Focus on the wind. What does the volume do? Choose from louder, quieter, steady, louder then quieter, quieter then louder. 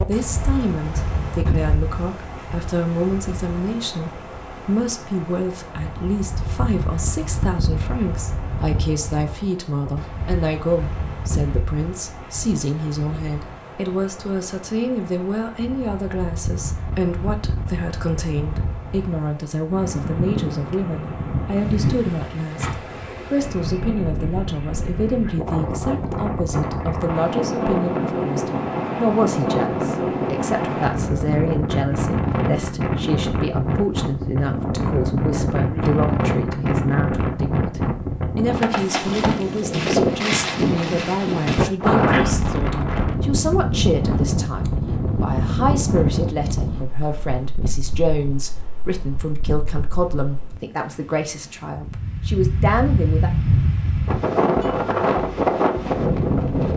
louder.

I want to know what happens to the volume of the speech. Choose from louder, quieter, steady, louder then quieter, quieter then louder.
steady.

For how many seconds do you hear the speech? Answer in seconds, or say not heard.
53 s.